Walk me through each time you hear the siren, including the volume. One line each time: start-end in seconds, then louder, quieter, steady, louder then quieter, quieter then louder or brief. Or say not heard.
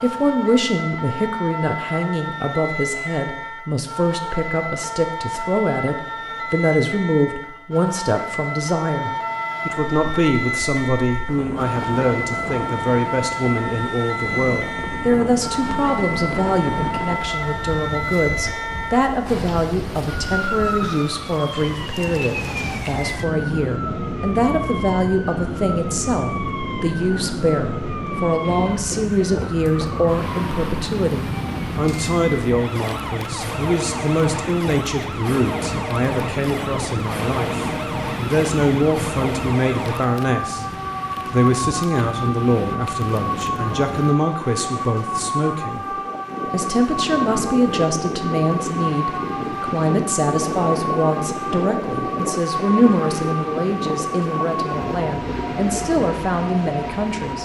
0.0-57.4 steady.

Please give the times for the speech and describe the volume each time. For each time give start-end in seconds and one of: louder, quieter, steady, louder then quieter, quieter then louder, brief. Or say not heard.
0.0-40.6 steady
41.3-57.4 steady.